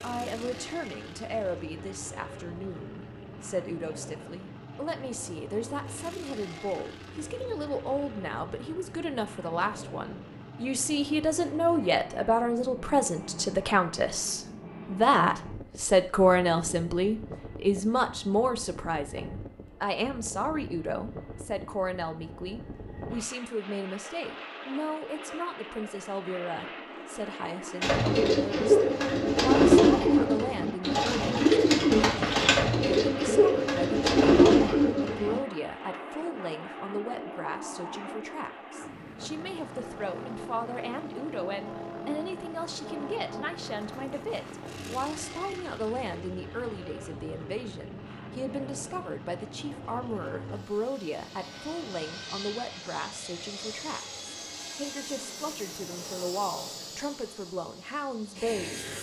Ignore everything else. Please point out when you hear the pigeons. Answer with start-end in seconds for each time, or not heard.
27.8-35.4.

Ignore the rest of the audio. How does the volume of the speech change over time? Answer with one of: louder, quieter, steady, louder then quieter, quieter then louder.
louder then quieter.